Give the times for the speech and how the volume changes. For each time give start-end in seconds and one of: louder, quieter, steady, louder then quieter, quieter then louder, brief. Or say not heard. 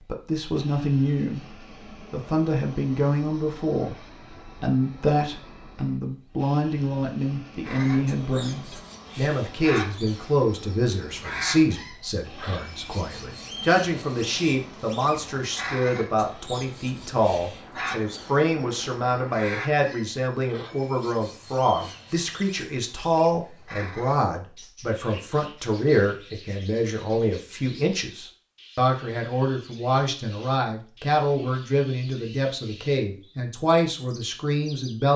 0.1-35.1 steady.